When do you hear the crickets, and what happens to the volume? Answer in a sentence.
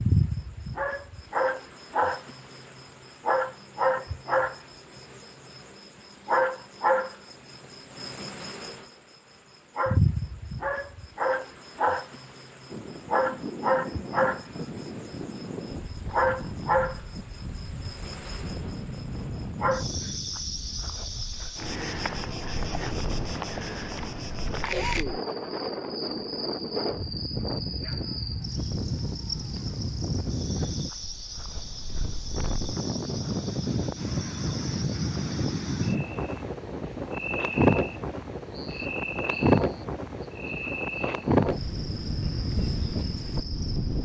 The crickets can be heard from 0.0 to 43.9 s, getting quieter.